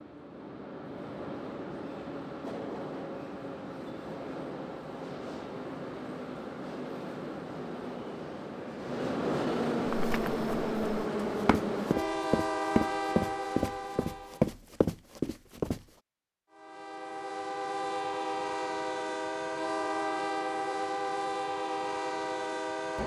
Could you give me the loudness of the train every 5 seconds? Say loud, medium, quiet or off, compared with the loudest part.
medium, loud, loud, loud, loud.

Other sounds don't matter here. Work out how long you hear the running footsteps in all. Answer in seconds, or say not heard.
6 s.